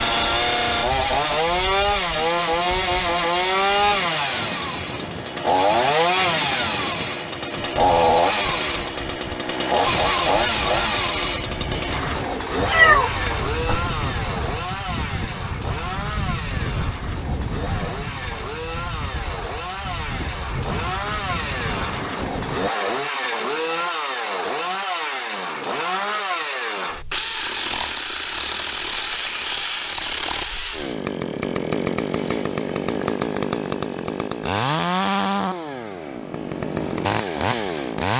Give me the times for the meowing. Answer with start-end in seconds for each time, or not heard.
12.6-13.8.